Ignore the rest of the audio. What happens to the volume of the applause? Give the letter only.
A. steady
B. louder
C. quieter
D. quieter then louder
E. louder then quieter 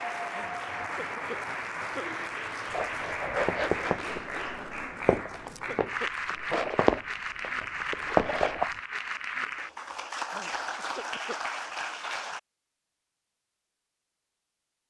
A.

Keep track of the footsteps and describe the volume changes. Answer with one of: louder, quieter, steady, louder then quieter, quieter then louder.
quieter then louder.